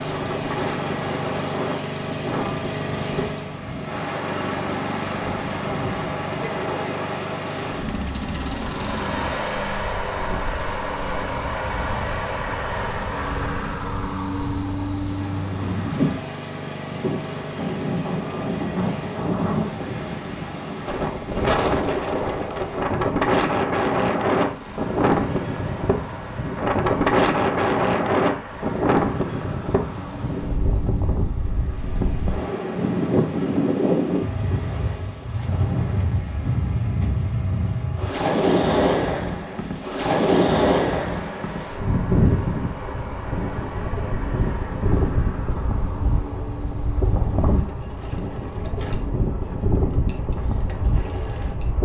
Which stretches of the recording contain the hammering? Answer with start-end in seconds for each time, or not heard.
not heard.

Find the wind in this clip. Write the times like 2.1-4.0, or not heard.
0.0-51.8.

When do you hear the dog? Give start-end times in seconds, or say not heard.
not heard.